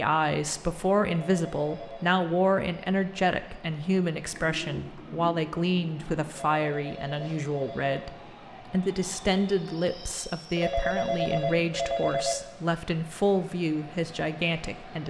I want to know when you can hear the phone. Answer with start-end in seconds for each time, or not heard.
1.1-2.0, 6.3-8.0, 10.6-12.3.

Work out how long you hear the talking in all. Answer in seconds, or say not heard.
15 s.